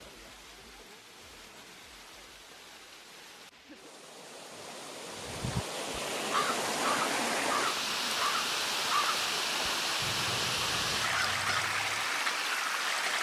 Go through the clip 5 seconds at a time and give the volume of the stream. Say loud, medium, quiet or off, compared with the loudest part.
quiet, loud, loud.